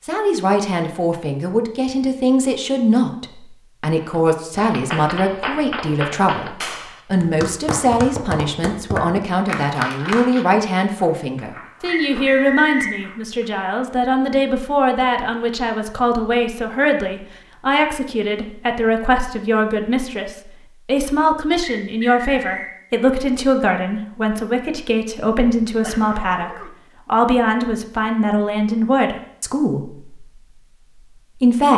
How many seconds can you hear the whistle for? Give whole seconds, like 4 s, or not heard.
2 s.